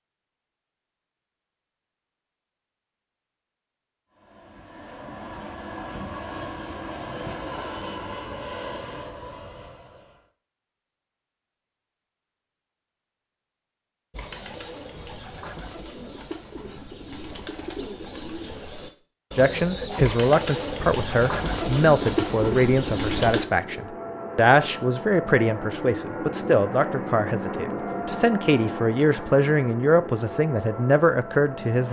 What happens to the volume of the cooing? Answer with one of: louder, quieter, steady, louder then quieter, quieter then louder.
louder.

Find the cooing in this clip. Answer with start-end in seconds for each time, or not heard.
14.1-23.4.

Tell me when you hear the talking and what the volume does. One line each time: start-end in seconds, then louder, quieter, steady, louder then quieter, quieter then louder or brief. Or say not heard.
19.4-31.8 steady.